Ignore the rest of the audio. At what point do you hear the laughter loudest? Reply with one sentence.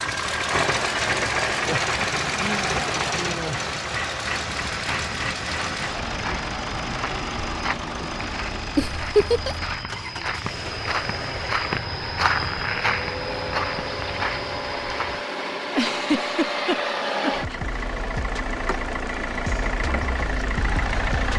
The loudest moment of the laughter is at 9 seconds.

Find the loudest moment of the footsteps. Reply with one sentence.
The loudest moment of the footsteps is at 12 seconds.